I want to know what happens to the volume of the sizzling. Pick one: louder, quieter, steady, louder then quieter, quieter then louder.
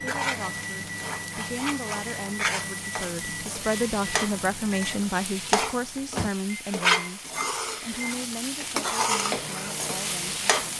louder.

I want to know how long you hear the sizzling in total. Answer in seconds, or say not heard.
11 s.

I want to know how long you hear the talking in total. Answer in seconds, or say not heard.
11 s.